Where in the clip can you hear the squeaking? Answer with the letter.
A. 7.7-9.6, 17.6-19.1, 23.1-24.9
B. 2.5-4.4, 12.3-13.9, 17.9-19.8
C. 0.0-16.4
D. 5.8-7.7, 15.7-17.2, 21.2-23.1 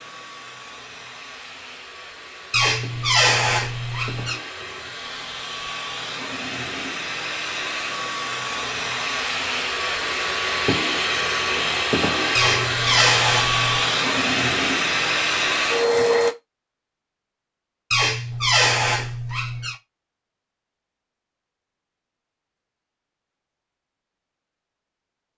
B.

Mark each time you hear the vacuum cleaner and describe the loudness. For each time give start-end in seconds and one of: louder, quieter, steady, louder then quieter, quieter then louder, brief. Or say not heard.
0.0-16.4 louder.